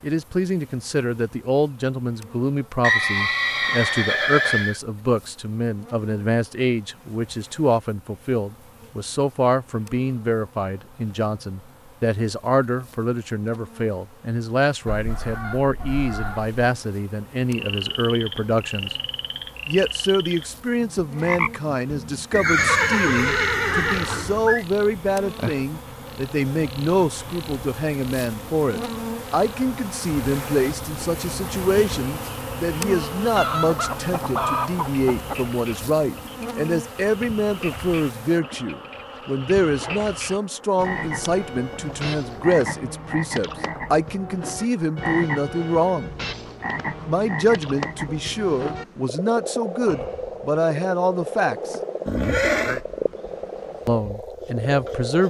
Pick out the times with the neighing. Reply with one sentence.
You can hear the neighing from 2.8 to 4.8 s, from 22.3 to 24.6 s and from 52.0 to 52.8 s.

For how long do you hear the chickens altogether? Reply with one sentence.
The chickens can be heard for 6 seconds in total.